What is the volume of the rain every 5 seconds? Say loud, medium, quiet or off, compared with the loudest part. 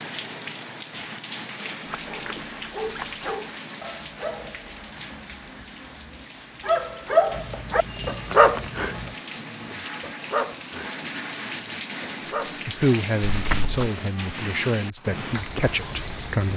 loud, medium, loud, loud.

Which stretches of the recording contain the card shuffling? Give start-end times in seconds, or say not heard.
1.9-3.2, 7.3-9.2, 13.3-13.9.